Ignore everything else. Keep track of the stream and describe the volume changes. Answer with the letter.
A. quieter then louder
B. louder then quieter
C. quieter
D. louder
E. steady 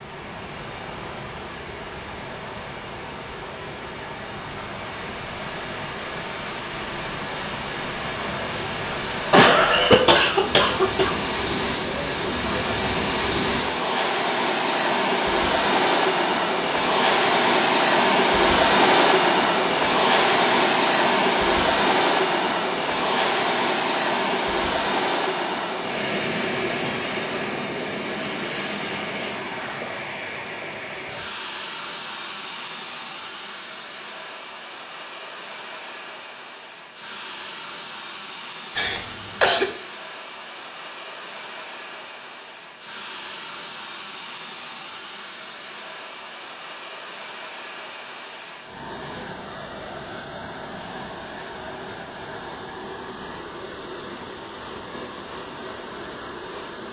B.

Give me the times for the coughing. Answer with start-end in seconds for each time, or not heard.
9.3-11.2, 38.8-39.7.